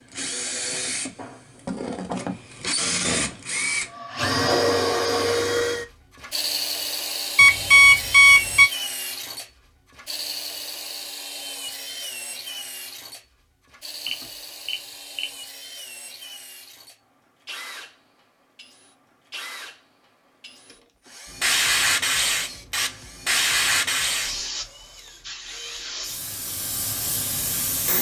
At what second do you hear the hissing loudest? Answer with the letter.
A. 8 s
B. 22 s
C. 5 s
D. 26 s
B.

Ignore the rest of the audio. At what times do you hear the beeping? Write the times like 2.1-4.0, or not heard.
7.3-8.7, 14.1-15.3.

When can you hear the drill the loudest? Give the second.
5 s.